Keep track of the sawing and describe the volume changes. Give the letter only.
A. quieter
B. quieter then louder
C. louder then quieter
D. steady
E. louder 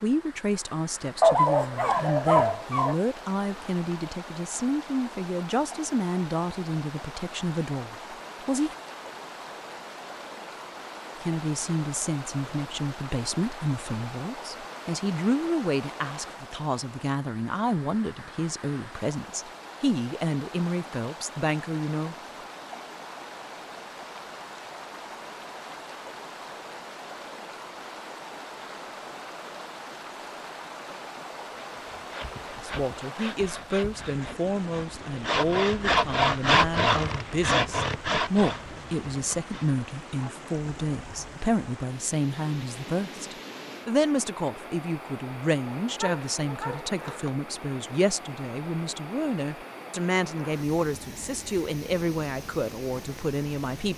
C.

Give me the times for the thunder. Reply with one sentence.
You can't hear the thunder here.